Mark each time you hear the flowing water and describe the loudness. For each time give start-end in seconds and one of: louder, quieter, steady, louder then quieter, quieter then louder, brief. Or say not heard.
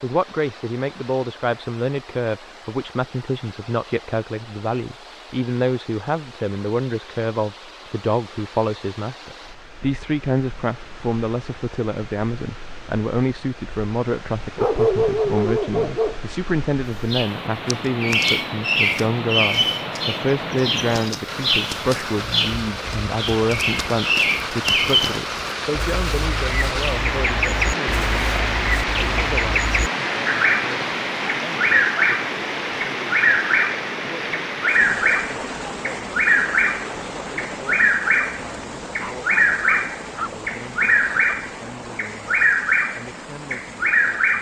0.0-44.3 louder then quieter.